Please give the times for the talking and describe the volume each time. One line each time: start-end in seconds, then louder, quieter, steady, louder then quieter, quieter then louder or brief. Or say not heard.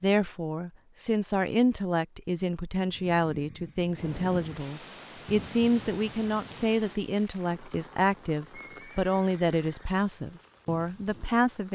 0.0-11.7 steady.